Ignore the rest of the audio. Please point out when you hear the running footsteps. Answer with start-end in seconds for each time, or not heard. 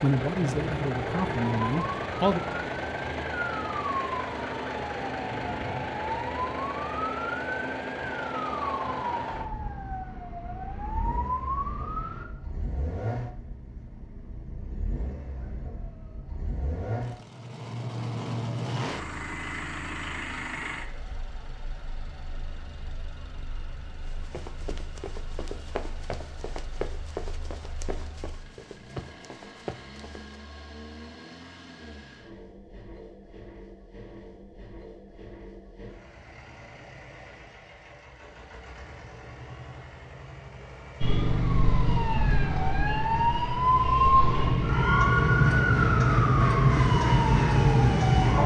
24.0-30.4.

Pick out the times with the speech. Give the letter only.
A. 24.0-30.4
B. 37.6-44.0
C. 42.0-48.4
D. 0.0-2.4
D.